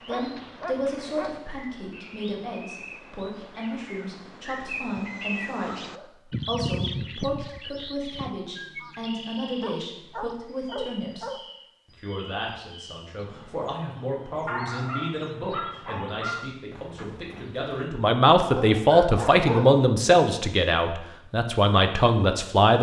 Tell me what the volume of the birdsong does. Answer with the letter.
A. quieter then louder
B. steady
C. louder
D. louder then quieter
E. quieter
D.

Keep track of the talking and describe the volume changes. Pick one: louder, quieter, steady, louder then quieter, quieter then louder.
louder.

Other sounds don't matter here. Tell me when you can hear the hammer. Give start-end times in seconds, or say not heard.
not heard.